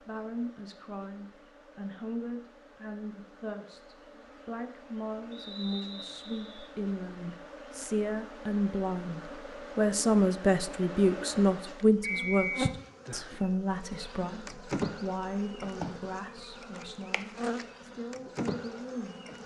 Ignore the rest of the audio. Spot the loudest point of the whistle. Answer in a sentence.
The loudest moment of the whistle is at 12 seconds.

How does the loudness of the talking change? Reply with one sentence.
The volume of the talking goes up, then down.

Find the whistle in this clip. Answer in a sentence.
You can hear the whistle from 5.3 to 6.7 s and from 12.0 to 12.7 s.